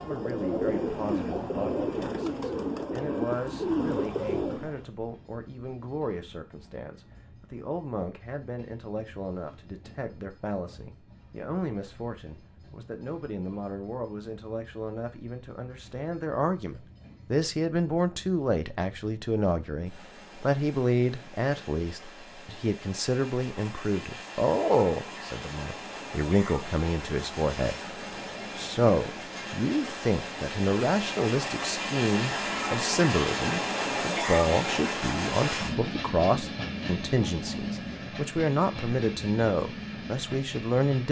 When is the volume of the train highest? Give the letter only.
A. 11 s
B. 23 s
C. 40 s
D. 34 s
D.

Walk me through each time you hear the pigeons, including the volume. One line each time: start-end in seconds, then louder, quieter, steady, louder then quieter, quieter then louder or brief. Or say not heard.
0.0-4.8 steady.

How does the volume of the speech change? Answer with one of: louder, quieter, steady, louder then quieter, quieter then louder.
louder.